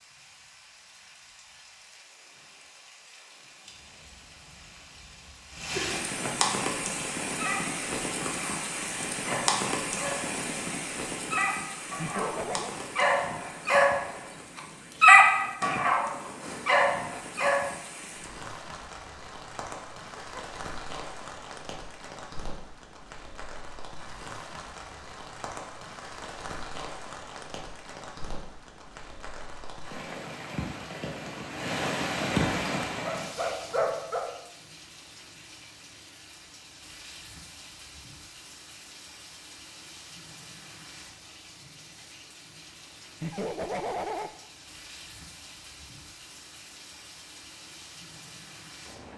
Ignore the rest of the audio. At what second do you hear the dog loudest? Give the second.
15 s.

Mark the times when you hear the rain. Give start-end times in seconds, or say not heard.
0.0-49.1.